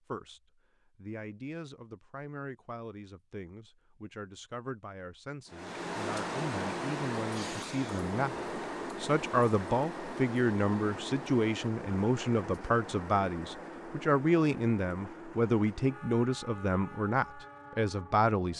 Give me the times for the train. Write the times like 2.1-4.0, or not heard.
5.5-18.5.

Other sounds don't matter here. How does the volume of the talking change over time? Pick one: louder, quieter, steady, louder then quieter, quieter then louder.
louder.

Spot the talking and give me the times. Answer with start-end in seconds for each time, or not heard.
0.1-18.5.